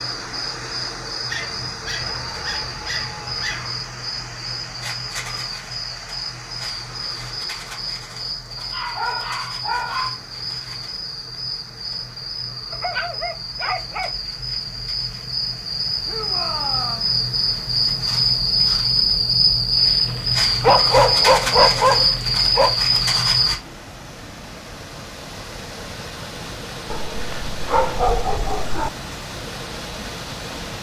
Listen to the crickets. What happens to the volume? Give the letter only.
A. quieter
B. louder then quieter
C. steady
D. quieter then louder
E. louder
E.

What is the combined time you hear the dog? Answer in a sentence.
The dog can be heard for 10 seconds in total.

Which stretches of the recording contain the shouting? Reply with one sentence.
The shouting can be heard from 2.0 to 3.5 s and from 16.1 to 17.1 s.